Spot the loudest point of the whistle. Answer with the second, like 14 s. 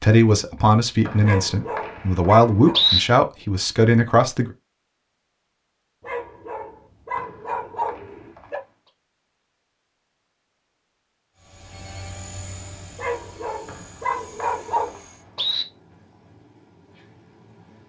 3 s.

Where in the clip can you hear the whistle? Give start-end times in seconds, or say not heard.
1.1-3.0, 7.2-8.5, 13.7-15.7.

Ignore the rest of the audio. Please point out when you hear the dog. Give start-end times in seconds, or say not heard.
1.2-2.8, 6.0-8.6, 12.9-15.0.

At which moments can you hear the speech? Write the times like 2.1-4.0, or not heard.
0.0-4.5.